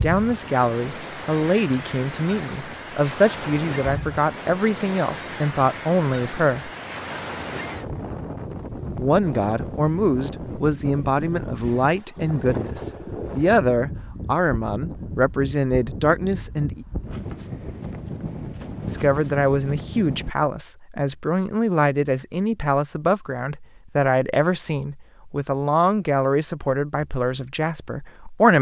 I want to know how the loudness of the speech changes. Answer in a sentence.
The loudness of the speech stays about the same.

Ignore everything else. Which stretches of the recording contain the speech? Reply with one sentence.
The speech can be heard from 0.0 to 6.7 s, from 8.9 to 16.9 s and from 18.9 to 28.5 s.